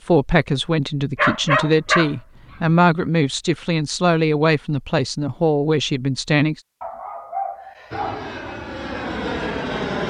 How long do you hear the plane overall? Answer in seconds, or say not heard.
2 s.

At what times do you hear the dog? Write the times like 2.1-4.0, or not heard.
1.1-2.1, 6.8-8.3.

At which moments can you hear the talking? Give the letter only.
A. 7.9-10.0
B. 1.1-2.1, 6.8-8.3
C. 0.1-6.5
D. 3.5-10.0
C.